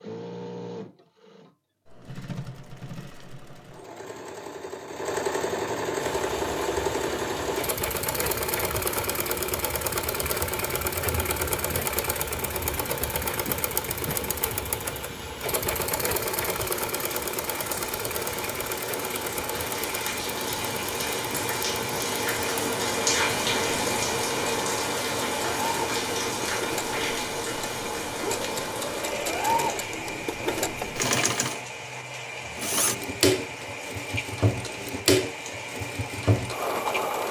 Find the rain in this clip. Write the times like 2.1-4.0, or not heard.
6.0-37.2.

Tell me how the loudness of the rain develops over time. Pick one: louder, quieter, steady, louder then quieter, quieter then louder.
louder then quieter.